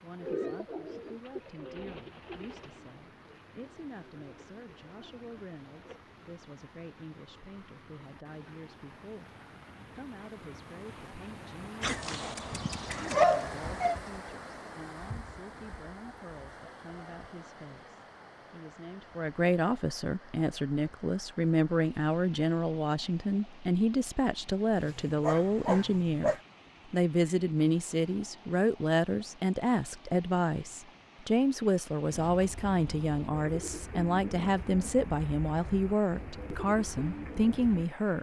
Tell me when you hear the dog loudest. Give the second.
13 s.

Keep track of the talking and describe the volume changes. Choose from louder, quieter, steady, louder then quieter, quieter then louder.
louder.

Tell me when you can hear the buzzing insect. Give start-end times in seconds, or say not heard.
not heard.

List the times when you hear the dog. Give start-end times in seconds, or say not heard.
11.8-13.9, 24.8-26.4.